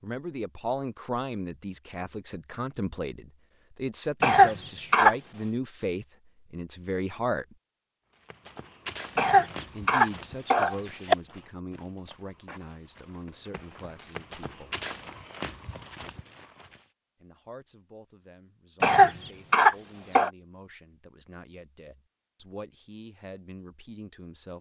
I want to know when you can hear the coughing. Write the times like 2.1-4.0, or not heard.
4.2-5.2, 9.2-11.2, 18.8-20.3.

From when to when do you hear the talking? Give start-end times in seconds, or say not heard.
0.0-7.5, 9.7-14.8, 17.2-24.5.